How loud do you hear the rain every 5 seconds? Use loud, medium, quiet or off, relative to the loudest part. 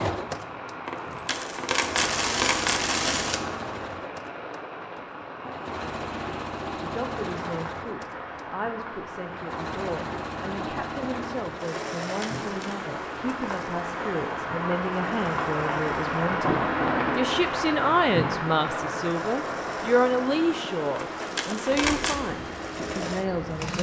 medium, medium, medium, loud, medium.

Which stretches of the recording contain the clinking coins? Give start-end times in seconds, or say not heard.
0.8-3.4, 12.1-12.8, 20.9-22.2.